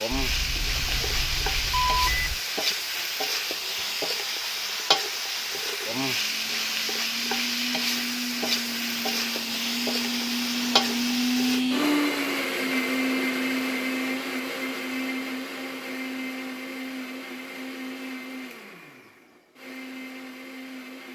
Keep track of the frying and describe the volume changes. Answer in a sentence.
The volume of the frying stays about the same.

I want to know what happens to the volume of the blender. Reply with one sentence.
The volume of the blender goes up, then down.